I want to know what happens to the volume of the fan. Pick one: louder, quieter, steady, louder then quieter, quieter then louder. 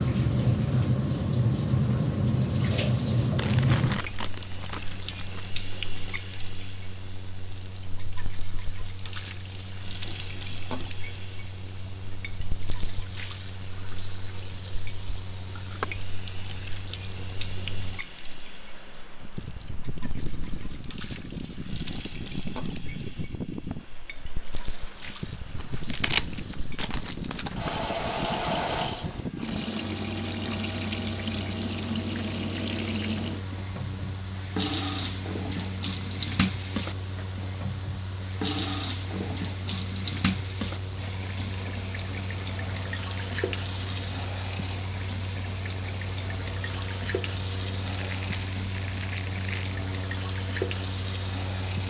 louder.